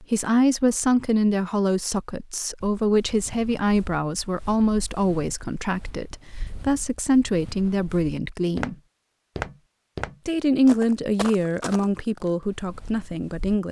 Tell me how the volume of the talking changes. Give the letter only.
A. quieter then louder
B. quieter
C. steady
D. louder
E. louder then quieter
C.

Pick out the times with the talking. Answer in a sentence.
The talking can be heard from 0.0 to 8.8 s and from 10.2 to 13.6 s.